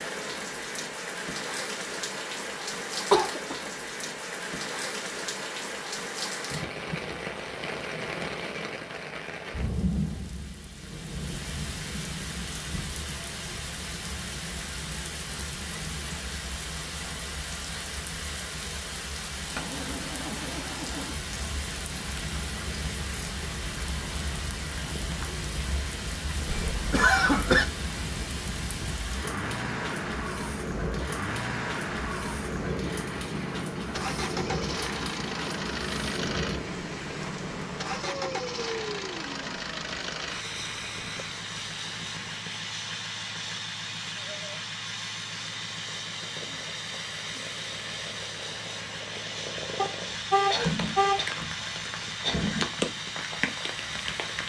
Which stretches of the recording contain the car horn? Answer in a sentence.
The car horn can be heard from 49.8 to 51.2 s.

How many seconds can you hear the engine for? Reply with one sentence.
You can hear the engine for 35 seconds altogether.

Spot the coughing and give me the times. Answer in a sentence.
You can hear the coughing from 3.1 to 3.7 s, from 26.4 to 27.6 s and from 50.5 to 52.7 s.